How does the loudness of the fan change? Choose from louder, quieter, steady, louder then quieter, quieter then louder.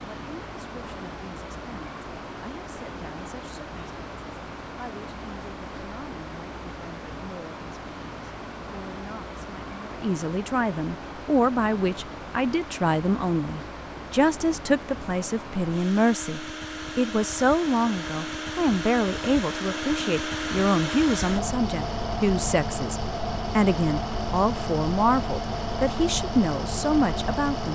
louder.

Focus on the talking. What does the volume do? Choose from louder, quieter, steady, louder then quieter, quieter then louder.
louder.